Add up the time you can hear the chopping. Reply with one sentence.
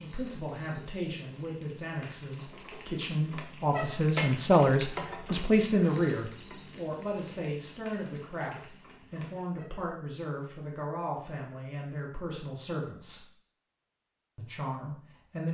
You can't hear the chopping here.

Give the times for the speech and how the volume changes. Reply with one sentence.
The speech can be heard from 0.0 to 13.2 s, getting louder then quieter; and briefly from 14.3 to 15.4 s.